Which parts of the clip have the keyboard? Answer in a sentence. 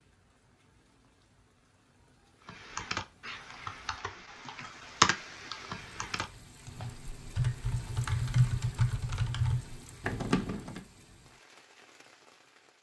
You can hear the keyboard from 2.5 to 10.8 s.